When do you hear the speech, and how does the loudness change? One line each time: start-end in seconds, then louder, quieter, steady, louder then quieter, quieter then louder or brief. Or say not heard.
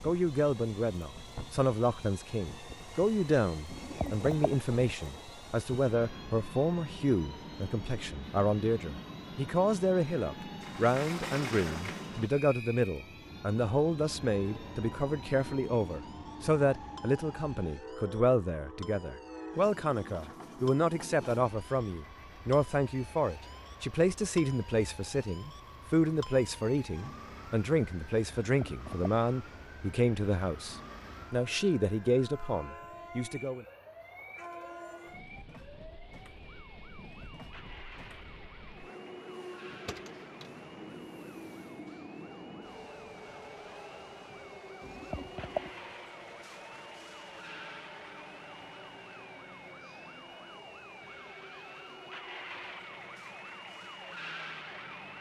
0.0-33.6 steady.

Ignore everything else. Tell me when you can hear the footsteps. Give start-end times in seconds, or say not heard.
not heard.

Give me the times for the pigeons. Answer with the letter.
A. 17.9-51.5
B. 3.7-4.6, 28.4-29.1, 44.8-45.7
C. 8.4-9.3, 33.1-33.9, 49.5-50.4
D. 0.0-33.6
B.